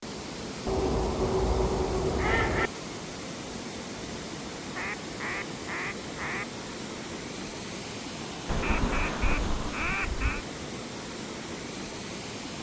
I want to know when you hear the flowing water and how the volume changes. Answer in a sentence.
The flowing water can be heard from 0.0 to 12.5 s, at a steady volume.